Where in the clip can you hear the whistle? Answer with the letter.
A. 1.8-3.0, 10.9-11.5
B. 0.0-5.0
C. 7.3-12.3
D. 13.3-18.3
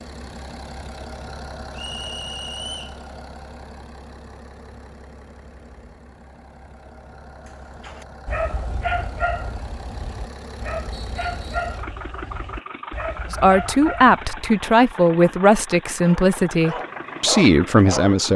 A.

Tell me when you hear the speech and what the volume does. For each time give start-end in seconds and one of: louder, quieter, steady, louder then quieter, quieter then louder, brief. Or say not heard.
13.3-18.3 steady.